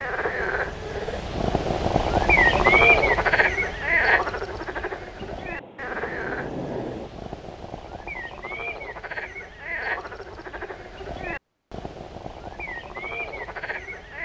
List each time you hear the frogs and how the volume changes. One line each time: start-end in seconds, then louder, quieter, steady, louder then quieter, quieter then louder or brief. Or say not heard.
0.0-14.2 quieter.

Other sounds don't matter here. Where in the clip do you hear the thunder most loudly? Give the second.
7 s.